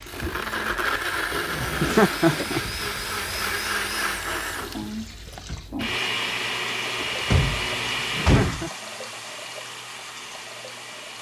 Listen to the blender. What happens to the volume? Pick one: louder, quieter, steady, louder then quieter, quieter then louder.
quieter.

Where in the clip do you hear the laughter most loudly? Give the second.
2 s.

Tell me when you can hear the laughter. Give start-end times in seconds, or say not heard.
1.6-2.9, 8.2-8.7.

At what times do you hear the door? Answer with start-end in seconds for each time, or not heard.
1.3-2.5, 7.0-8.7.